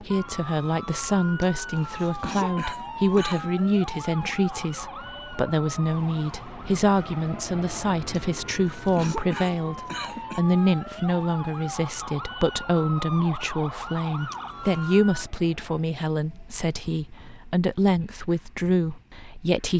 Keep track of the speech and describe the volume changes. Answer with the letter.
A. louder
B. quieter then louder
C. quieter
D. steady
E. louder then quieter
D.